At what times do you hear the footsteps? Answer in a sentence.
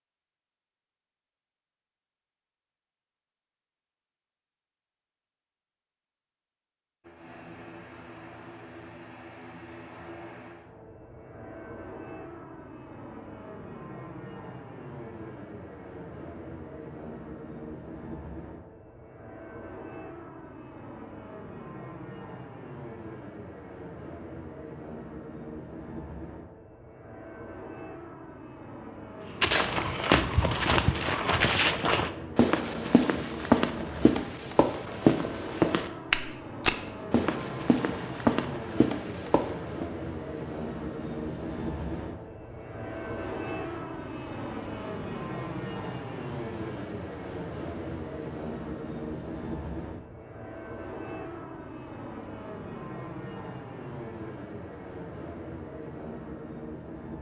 The footsteps can be heard from 29.4 to 39.9 s.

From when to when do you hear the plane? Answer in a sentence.
You can hear the plane from 7.0 to 57.1 s.